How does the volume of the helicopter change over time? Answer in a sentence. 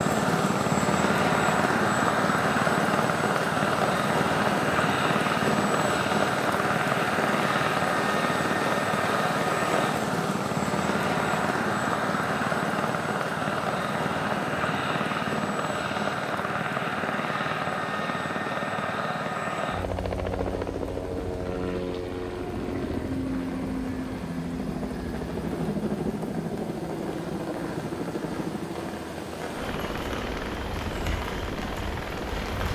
The volume of the helicopter goes down.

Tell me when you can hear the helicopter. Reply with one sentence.
The helicopter can be heard from 0.0 to 32.6 s.